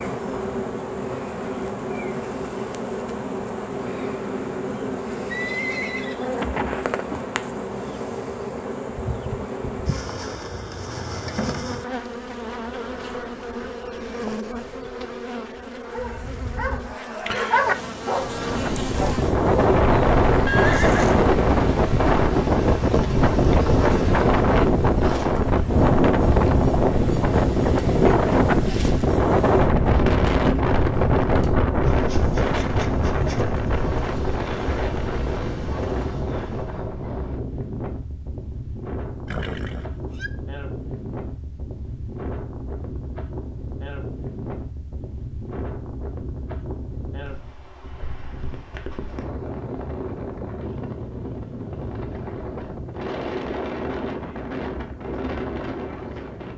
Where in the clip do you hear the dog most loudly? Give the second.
18 s.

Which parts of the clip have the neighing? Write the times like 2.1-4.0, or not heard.
5.3-7.2, 20.4-21.2, 39.2-40.3.